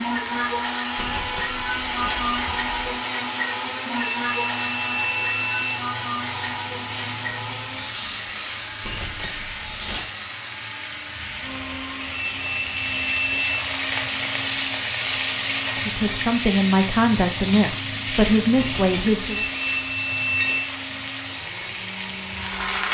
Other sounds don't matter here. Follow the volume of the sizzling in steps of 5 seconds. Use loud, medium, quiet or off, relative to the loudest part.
medium, medium, loud, loud, loud.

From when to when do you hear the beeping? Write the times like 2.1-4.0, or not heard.
4.0-5.8, 12.2-13.6, 19.3-20.6.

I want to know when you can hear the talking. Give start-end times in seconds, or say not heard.
15.8-19.4.